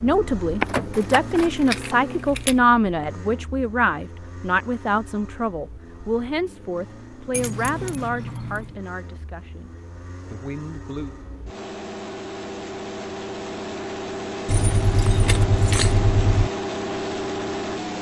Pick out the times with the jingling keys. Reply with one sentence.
You can hear the jingling keys from 0.6 to 2.5 s, from 7.3 to 8.7 s and from 14.4 to 16.5 s.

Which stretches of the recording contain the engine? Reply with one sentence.
You can hear the engine from 0.0 to 17.9 s.